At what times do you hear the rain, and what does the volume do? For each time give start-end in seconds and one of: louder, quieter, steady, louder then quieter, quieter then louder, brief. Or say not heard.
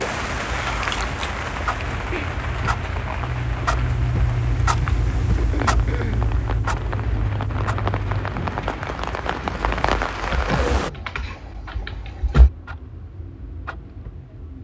0.0-10.9 quieter then louder.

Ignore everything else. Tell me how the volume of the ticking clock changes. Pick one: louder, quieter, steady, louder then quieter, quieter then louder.
louder then quieter.